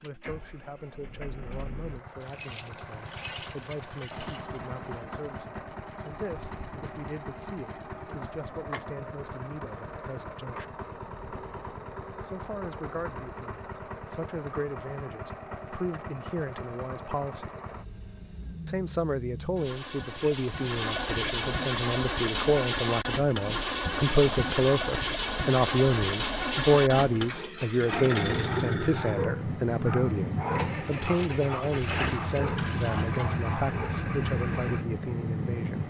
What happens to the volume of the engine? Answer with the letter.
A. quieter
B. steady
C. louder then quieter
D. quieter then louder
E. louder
E.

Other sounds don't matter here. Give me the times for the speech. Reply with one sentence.
You can hear the speech from 0.0 to 10.7 s, from 12.2 to 17.5 s and from 18.6 to 35.8 s.